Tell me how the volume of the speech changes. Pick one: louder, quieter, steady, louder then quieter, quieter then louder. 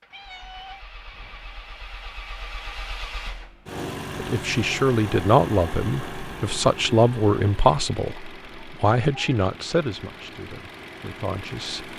quieter.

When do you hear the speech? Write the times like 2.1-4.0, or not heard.
4.2-11.9.